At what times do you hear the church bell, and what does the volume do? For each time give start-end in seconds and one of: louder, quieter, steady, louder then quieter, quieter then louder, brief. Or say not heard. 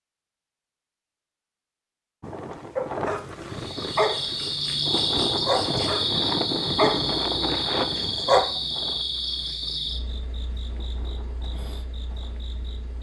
not heard.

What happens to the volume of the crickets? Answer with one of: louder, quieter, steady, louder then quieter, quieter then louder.
quieter.